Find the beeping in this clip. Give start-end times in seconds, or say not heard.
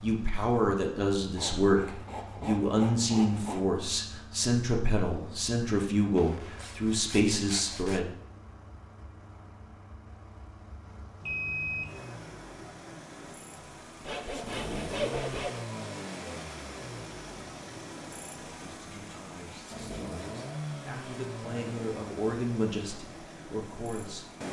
11.2-11.9.